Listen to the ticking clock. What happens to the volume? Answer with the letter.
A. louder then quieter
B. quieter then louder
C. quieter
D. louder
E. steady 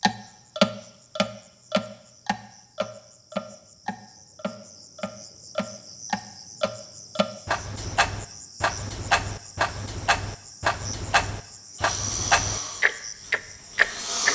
B.